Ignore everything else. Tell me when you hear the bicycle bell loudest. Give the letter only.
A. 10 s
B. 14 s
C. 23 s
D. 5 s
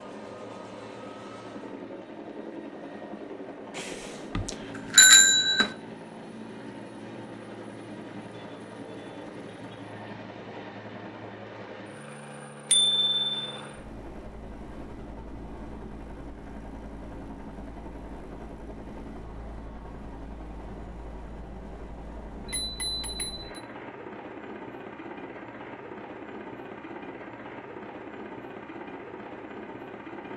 D.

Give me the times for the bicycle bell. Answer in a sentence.
You can hear the bicycle bell from 4.3 to 5.7 s, from 12.7 to 13.3 s and from 22.4 to 23.5 s.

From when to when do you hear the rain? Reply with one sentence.
The rain can't be heard in this clip.